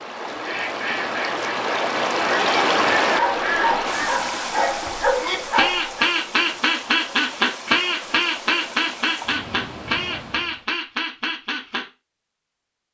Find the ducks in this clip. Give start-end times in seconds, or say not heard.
0.3-11.8.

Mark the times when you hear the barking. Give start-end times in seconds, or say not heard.
3.1-6.0.